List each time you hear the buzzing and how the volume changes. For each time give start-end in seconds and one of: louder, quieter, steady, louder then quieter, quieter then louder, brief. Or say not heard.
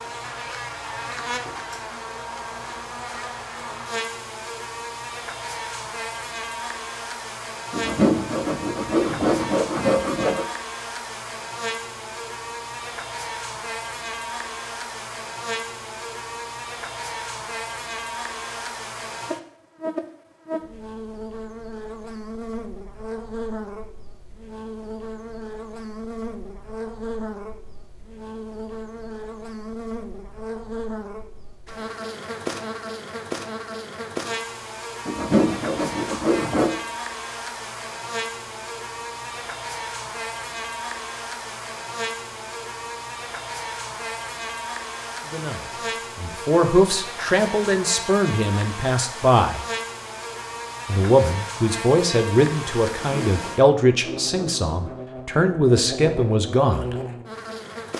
0.0-57.9 steady.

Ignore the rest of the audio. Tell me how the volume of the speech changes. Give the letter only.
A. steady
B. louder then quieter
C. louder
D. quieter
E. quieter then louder
A.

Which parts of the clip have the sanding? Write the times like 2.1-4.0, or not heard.
7.7-10.4, 35.0-36.8, 53.0-55.0.